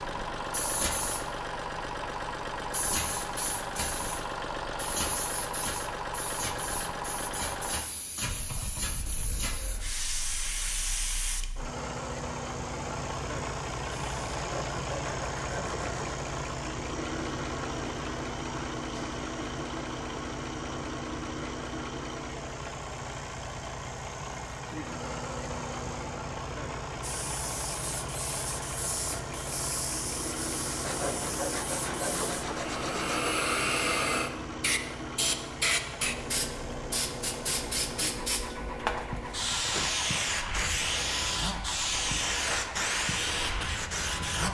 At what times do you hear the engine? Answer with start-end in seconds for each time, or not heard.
0.0-44.4.